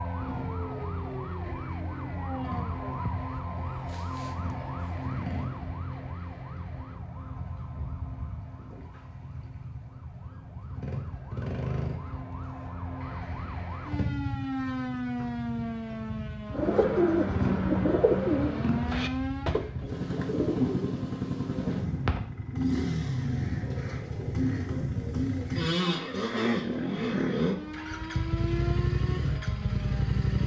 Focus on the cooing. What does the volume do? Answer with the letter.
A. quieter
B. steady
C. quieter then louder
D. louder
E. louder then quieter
A.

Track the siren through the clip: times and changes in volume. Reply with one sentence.
You can hear the siren from 0.0 to 19.6 s, getting quieter then louder; and briefly from 27.6 to 30.4 s.